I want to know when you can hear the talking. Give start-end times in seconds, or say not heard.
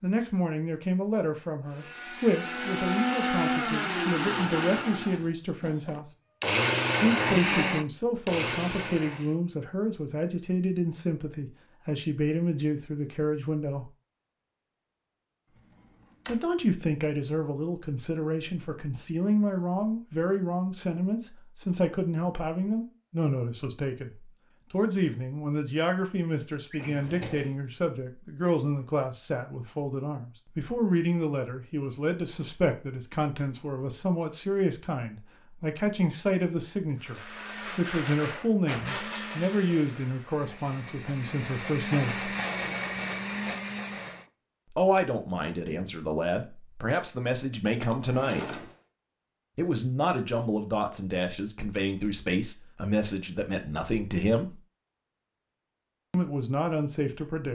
0.0-6.0, 7.0-13.9, 16.2-42.3, 44.7-48.6, 49.5-54.6, 56.1-57.5.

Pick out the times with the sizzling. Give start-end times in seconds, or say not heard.
not heard.